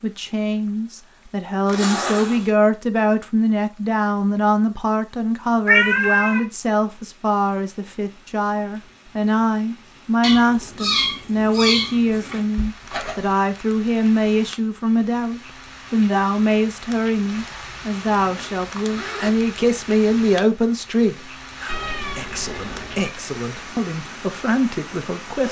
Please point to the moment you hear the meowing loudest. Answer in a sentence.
The loudest moment of the meowing is at 6 seconds.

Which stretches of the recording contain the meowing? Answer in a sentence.
The meowing can be heard from 5.7 to 6.4 s, from 10.2 to 12.4 s and from 21.6 to 23.1 s.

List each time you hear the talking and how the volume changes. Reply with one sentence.
You can hear the talking from 0.0 to 25.4 s, at a steady volume.